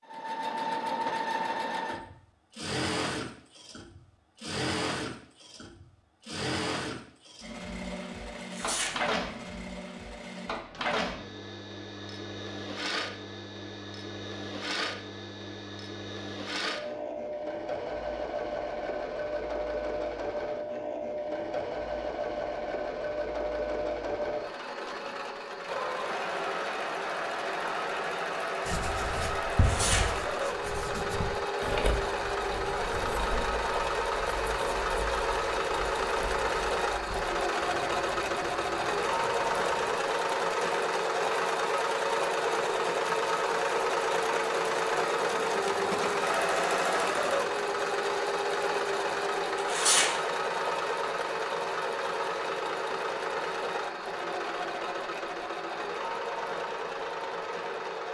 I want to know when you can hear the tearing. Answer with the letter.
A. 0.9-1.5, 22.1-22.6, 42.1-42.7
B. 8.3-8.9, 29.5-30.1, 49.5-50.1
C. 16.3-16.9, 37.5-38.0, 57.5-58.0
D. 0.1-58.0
B.